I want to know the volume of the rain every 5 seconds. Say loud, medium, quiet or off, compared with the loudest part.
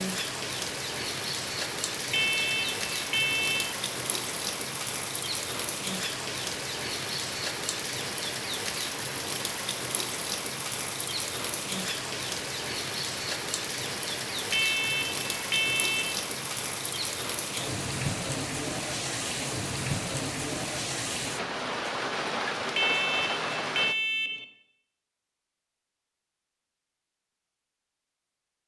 loud, loud, loud, loud, loud, off.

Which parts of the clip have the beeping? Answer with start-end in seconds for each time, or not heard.
2.1-3.8, 14.5-16.2, 22.8-24.4.